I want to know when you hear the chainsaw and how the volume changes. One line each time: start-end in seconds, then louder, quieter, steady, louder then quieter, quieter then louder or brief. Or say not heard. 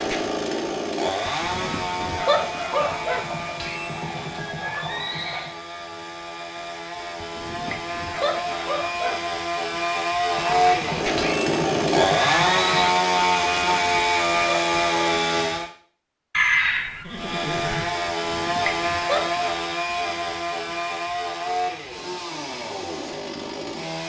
0.0-15.7 quieter then louder
17.1-24.0 quieter.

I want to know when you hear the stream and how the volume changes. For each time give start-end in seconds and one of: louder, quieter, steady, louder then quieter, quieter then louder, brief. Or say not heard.
not heard.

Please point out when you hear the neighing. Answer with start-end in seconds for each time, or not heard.
2.8-5.5, 10.3-13.0, 16.3-17.9.